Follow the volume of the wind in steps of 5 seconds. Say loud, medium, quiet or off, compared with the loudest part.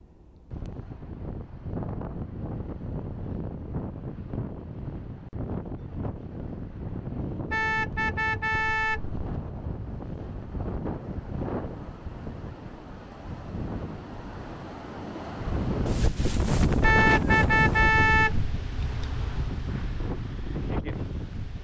medium, medium, medium, loud, medium.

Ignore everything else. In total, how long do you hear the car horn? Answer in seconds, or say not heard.
3 s.